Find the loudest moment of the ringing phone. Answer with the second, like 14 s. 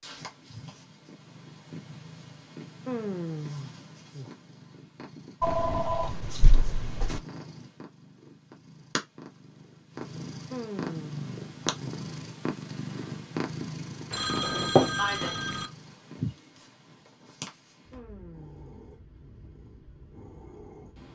15 s.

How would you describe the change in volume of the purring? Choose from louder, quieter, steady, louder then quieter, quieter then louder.
louder then quieter.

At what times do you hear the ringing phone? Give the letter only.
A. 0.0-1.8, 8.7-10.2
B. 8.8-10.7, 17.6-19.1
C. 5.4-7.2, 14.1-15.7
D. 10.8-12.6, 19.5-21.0
C.